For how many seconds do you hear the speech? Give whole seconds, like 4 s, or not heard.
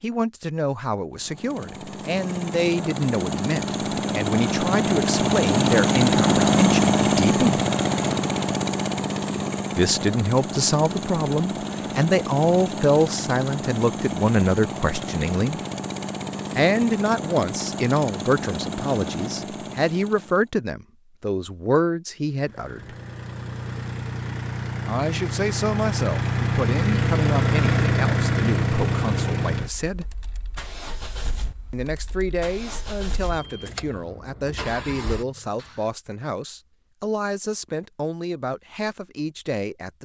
33 s.